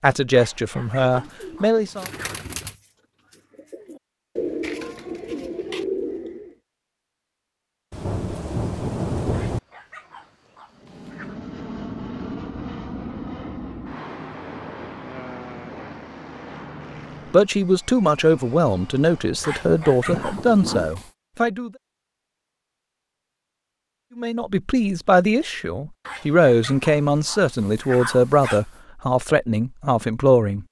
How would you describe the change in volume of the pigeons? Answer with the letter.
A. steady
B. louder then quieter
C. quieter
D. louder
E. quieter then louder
E.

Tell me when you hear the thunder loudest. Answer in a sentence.
The volume of the thunder peaks at 9 seconds.